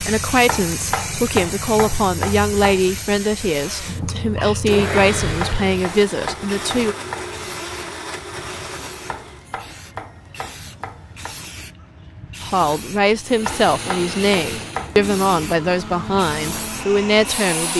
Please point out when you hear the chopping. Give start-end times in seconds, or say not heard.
0.5-2.9, 5.0-7.3, 9.1-11.4, 13.4-15.1.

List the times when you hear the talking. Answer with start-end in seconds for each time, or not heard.
0.0-7.0, 12.4-17.7.